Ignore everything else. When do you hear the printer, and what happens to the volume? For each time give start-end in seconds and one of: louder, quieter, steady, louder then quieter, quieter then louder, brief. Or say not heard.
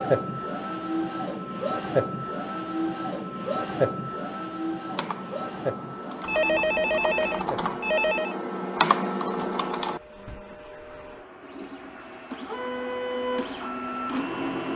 0.0-14.7 quieter then louder.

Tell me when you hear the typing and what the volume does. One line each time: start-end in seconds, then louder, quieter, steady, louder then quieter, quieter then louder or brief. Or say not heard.
4.8-10.4 louder.